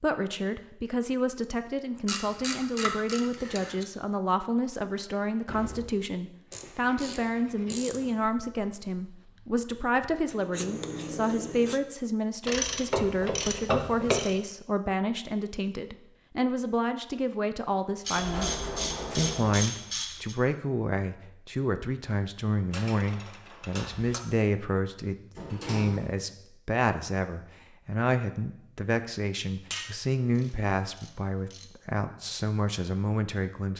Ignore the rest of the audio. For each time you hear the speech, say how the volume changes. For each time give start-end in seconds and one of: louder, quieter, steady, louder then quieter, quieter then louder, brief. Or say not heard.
0.0-33.7 steady.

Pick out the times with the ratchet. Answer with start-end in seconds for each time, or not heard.
2.0-3.9, 6.5-8.1, 12.4-14.3, 18.1-20.4, 22.7-24.2, 29.7-31.6.